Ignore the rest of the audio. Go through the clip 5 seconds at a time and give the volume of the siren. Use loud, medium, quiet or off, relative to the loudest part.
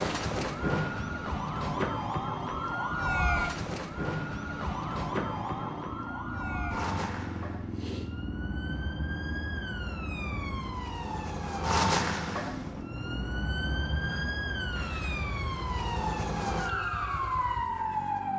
loud, medium, loud, loud.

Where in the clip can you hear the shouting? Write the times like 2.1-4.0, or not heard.
not heard.